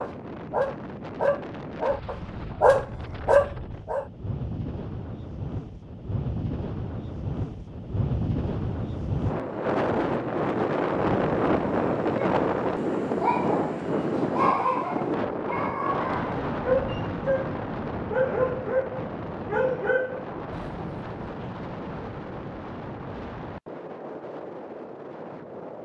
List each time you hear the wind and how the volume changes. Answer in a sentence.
The wind can be heard from 0.0 to 25.7 s, getting louder then quieter.